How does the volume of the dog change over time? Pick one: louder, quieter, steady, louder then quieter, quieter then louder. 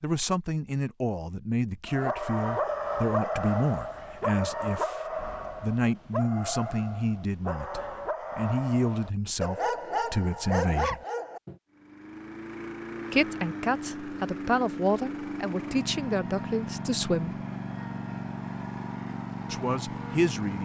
quieter then louder.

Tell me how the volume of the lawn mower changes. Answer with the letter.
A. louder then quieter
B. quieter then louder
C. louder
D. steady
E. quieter
D.